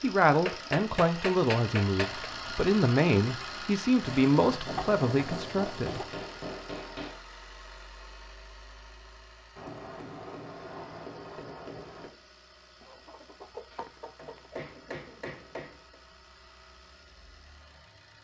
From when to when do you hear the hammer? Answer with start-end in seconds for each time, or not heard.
0.5-2.3, 4.7-7.2, 9.6-12.1, 13.7-15.9.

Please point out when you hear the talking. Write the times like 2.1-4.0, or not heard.
0.0-6.0.